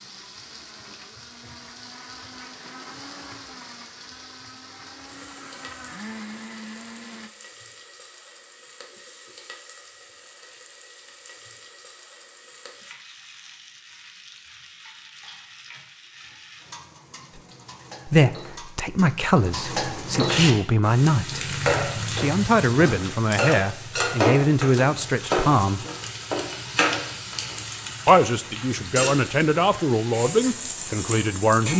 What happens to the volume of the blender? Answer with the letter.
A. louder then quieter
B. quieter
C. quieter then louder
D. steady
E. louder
E.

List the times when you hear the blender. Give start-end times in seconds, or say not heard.
0.0-7.3.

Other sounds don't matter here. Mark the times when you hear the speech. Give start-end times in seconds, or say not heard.
18.1-25.9, 28.1-31.7.